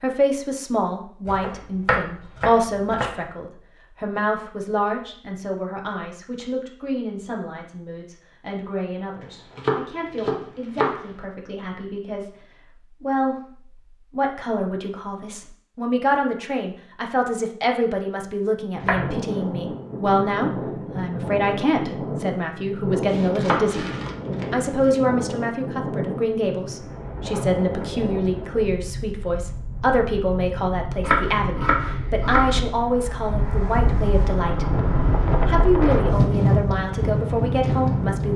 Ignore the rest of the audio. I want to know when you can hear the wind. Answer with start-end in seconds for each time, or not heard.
18.8-38.3.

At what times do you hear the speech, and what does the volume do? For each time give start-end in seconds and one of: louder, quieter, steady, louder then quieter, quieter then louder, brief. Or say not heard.
0.0-23.9 quieter then louder
24.5-34.9 steady
35.5-38.3 brief.